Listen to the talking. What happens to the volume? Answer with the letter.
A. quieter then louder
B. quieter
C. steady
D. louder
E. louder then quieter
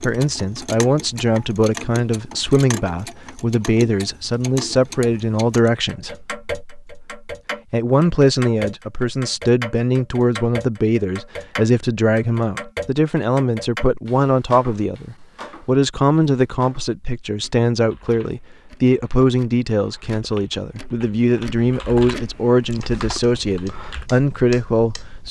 C.